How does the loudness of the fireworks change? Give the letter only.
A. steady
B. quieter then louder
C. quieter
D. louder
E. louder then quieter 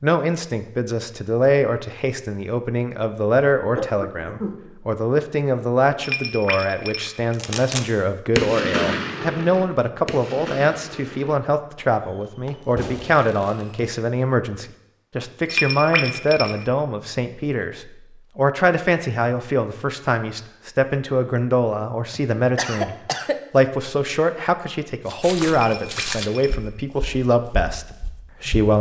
B.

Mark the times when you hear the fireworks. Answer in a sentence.
You can hear the fireworks from 7.3 to 13.9 s.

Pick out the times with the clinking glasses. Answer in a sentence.
The clinking glasses can be heard from 6.0 to 7.7 s, from 15.4 to 16.6 s and from 25.5 to 27.1 s.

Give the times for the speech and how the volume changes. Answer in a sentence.
The speech can be heard from 0.0 to 28.7 s, at a steady volume.